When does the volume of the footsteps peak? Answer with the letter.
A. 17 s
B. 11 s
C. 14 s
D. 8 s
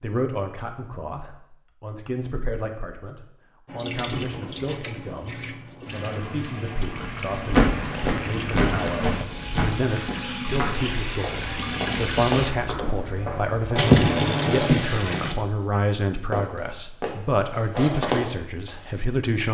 D.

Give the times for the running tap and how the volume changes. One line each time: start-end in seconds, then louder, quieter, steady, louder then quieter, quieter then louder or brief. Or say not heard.
3.6-15.3 louder.